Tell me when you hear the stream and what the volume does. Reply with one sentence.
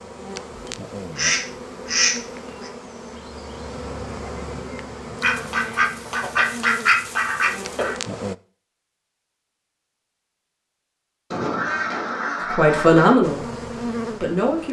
You can't hear the stream here.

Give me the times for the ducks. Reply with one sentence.
You can hear the ducks from 0.6 to 2.7 s, from 5.2 to 8.0 s and from 11.3 to 13.2 s.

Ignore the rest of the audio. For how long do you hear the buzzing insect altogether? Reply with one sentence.
You can hear the buzzing insect for 10 seconds altogether.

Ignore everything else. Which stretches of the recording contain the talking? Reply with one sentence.
You can hear the talking from 12.5 to 13.5 s and from 14.2 to 14.6 s.